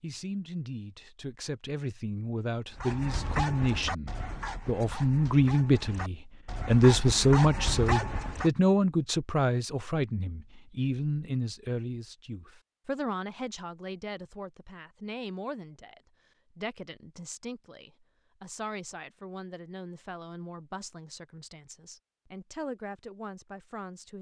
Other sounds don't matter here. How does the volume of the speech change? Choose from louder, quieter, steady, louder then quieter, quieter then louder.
louder then quieter.